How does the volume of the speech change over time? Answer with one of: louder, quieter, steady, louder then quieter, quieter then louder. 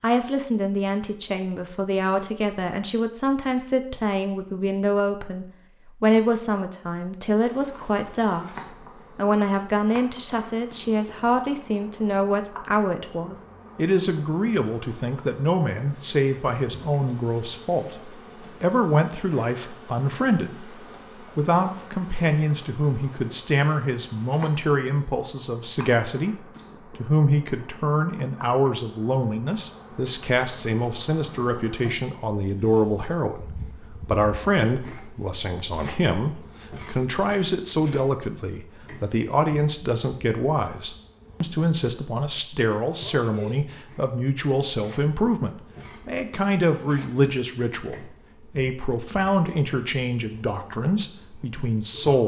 steady.